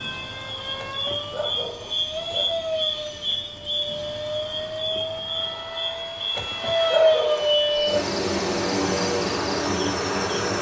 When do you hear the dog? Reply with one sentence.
You can hear the dog from 0.8 to 2.6 s and from 6.3 to 8.2 s.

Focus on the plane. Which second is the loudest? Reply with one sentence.
The volume of the plane peaks at 7 seconds.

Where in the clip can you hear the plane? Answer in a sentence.
The plane can be heard from 0.0 to 10.5 s.